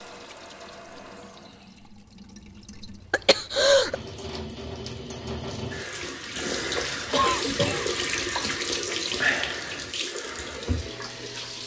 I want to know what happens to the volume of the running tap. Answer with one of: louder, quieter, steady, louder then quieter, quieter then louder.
louder.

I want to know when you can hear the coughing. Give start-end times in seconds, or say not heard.
3.1-4.0, 7.1-8.0.